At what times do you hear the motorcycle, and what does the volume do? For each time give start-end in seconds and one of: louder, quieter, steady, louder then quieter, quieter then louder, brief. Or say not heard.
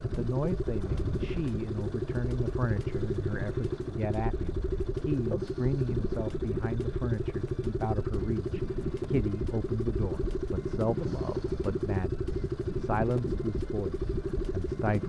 0.0-15.0 steady.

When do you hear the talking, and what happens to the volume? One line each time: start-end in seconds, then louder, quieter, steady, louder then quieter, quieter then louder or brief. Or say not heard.
0.0-15.0 steady.